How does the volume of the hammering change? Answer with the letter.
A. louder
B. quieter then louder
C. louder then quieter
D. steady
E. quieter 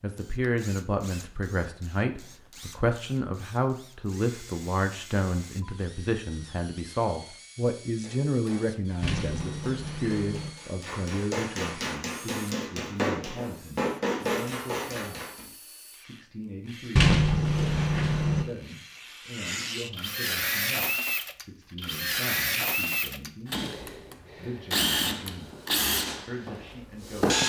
A.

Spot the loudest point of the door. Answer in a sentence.
The loudest moment of the door is at 17 seconds.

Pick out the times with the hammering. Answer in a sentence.
You can hear the hammering from 8.0 to 15.4 s.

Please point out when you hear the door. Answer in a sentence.
The door can be heard from 9.0 to 10.5 s and from 16.9 to 18.4 s.